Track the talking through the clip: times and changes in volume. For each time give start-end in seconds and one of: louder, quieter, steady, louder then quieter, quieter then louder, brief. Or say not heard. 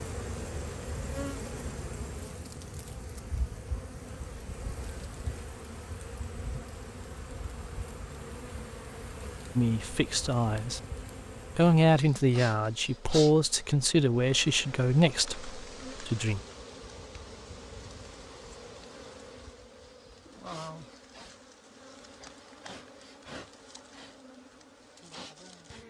9.6-10.8 brief
11.6-16.4 quieter.